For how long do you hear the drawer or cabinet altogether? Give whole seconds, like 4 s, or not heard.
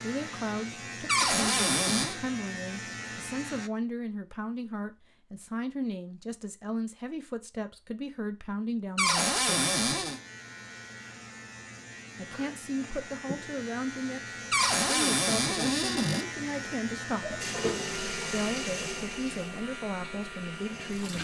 4 s.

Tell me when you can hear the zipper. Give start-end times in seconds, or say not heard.
17.2-17.9.